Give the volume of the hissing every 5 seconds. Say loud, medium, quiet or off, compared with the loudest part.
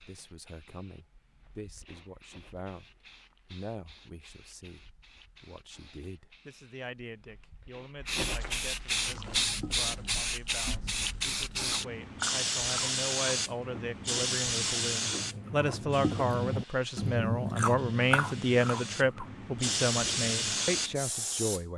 quiet, loud, loud, medium, loud.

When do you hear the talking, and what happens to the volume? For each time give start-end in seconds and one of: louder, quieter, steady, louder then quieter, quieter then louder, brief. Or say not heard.
0.1-21.7 louder.